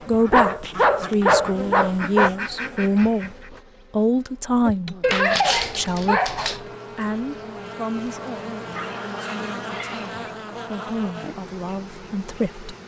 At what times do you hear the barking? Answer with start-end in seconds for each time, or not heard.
0.3-2.3, 5.0-6.6, 8.7-10.2.